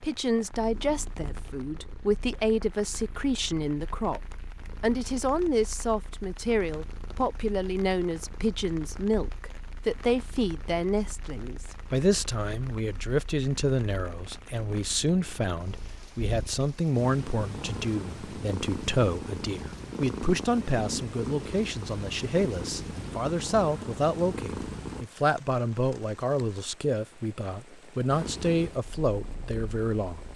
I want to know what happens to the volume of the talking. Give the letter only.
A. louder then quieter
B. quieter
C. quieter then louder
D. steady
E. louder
D.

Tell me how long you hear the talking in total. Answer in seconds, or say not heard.
30 s.